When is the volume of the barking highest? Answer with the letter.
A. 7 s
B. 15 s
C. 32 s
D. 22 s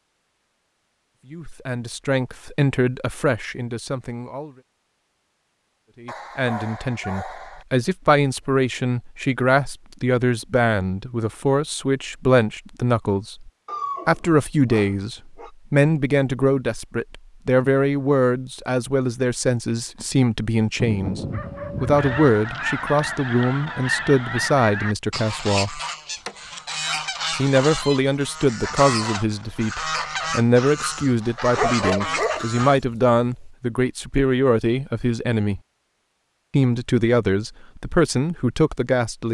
C.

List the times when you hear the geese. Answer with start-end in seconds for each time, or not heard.
21.9-32.9.